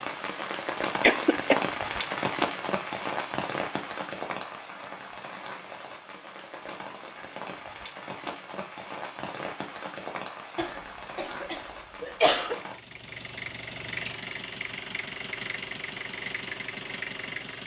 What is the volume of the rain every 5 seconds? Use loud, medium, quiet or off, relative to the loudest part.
loud, medium, medium, off.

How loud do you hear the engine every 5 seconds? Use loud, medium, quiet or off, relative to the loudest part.
off, off, loud, loud.